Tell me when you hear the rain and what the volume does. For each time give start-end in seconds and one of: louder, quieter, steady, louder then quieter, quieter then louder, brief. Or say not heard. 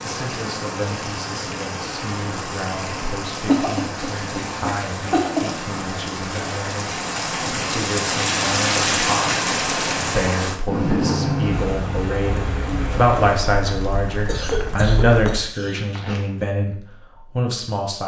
0.0-15.4 louder then quieter.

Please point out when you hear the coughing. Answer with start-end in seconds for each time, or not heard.
3.0-5.5, 14.2-16.2.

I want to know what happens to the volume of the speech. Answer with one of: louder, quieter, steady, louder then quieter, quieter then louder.
louder.